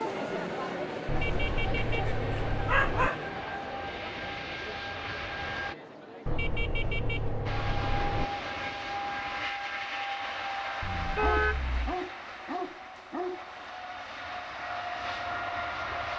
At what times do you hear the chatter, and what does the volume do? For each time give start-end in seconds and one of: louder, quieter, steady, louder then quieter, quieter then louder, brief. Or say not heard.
0.0-8.8 quieter.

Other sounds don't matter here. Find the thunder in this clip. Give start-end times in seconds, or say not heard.
not heard.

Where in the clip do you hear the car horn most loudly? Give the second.
11 s.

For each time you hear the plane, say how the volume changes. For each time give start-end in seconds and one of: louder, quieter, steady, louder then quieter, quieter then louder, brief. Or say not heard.
0.0-5.8 louder
7.5-16.1 quieter then louder.